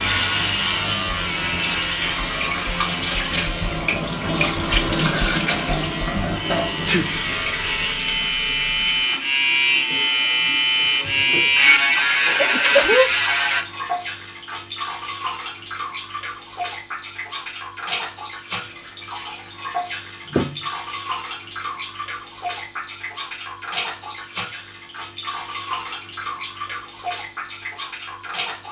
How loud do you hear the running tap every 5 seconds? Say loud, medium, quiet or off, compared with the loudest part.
loud, loud, medium, medium, medium, medium.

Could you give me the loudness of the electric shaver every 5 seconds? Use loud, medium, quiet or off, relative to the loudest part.
medium, medium, loud, off, off, off.